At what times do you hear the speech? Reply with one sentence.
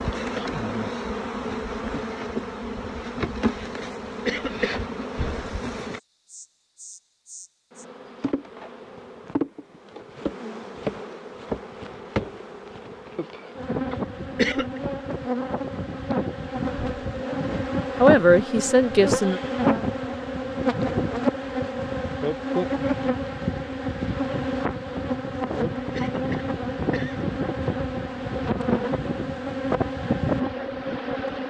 You can hear the speech from 17.9 to 19.4 s.